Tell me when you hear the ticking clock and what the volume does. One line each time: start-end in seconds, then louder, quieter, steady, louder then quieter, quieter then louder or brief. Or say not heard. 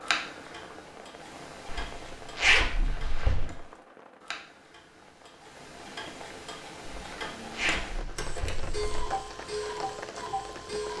0.0-10.9 louder.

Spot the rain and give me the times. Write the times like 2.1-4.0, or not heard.
0.0-10.9.